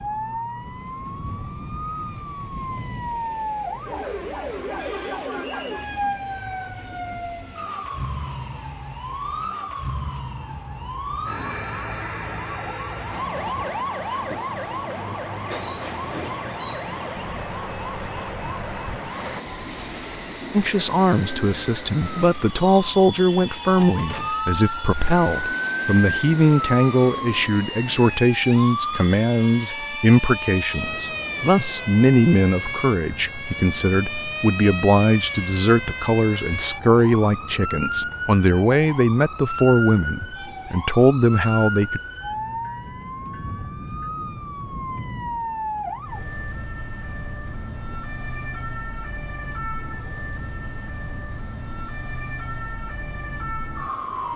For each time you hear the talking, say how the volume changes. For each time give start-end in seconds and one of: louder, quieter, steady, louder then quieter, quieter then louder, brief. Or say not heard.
20.5-42.0 steady.